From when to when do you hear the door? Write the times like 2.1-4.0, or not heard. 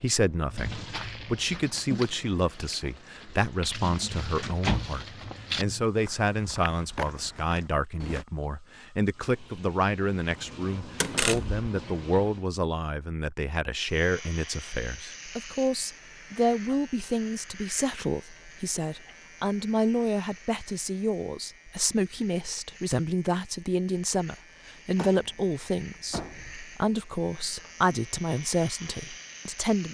4.4-5.3, 11.0-11.7, 24.9-26.6.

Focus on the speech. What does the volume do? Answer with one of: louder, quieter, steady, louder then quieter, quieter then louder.
steady.